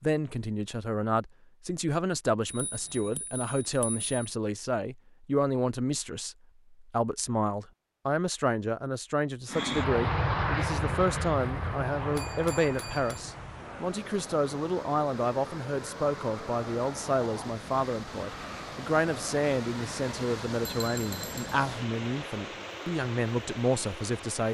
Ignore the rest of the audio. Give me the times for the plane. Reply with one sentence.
The plane can be heard from 9.5 to 20.4 s.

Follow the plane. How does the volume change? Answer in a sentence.
The loudness of the plane goes down.